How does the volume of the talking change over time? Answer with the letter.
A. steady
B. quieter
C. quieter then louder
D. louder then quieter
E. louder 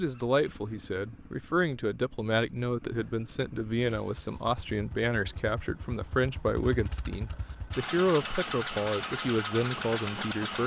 A.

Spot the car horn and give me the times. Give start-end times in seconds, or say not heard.
not heard.